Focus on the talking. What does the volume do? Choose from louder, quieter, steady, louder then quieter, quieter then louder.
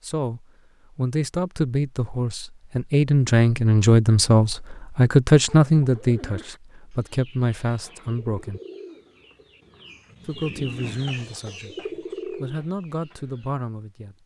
louder then quieter.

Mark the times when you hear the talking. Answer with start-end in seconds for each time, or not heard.
0.0-8.6, 10.2-14.2.